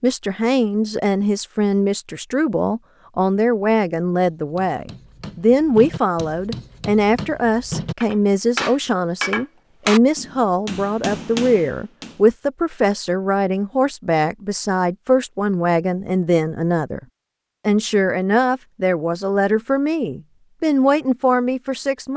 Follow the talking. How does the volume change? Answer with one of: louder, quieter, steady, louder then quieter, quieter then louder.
steady.